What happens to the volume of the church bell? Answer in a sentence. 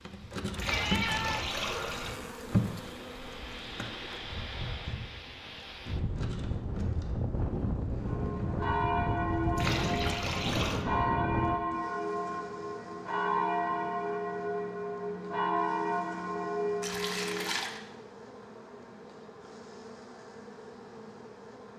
The volume of the church bell stays about the same.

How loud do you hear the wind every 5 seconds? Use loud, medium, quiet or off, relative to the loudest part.
medium, loud, loud, off, off.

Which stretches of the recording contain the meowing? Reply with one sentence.
You can hear the meowing from 0.7 to 1.7 s.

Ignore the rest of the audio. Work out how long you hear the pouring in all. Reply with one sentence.
You can hear the pouring for 4 seconds altogether.